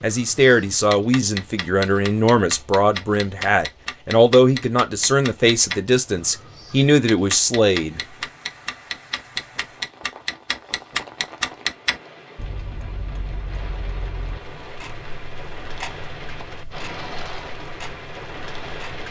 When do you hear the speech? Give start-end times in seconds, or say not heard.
0.0-8.0.